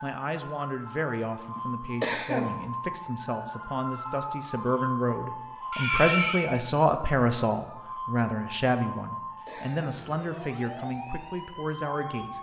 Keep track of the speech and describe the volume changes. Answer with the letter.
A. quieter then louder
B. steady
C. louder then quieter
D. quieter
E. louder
C.